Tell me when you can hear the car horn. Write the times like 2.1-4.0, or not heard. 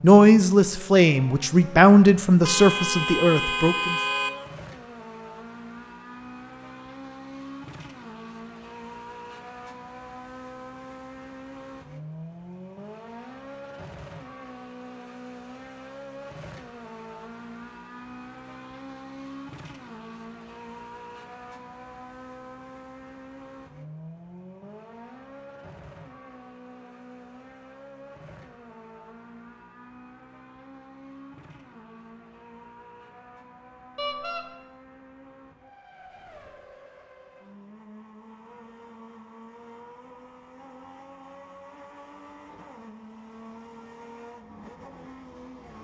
2.4-4.3, 34.0-34.5.